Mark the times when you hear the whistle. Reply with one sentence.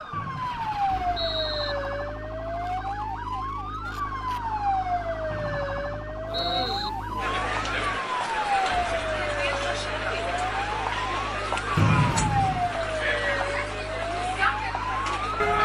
The whistle can be heard from 0.1 to 1.8 s, from 5.3 to 6.9 s and from 11.8 to 12.8 s.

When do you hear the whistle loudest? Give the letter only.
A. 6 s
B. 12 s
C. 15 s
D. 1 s
B.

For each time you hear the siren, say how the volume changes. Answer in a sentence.
The siren can be heard from 0.0 to 15.5 s, at a steady volume.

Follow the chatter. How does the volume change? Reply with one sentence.
The volume of the chatter stays about the same.